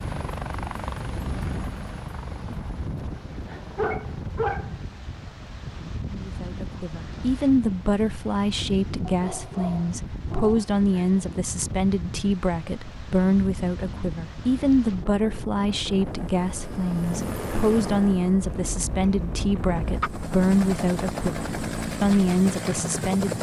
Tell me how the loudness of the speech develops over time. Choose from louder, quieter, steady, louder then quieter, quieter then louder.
steady.